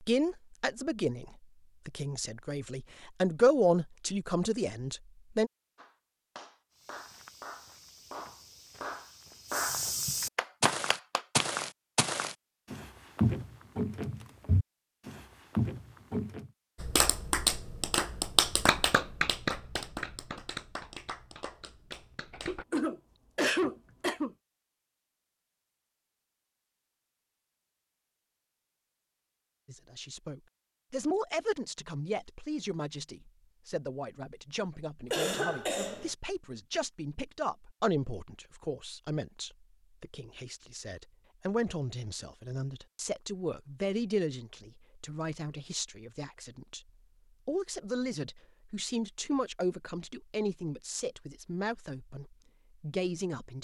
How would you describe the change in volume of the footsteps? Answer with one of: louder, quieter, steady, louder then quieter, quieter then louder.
louder.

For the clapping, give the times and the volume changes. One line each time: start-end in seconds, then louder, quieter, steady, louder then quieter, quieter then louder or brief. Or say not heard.
5.8-11.4 louder
16.8-22.6 quieter.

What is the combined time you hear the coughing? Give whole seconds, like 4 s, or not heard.
3 s.